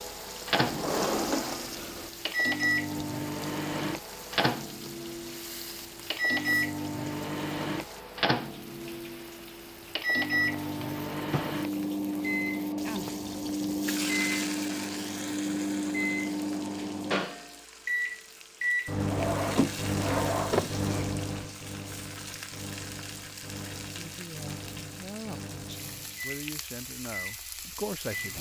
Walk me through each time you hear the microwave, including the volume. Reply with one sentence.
You can hear the microwave from 0.0 to 28.3 s, getting quieter.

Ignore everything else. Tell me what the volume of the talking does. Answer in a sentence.
The volume of the talking goes up.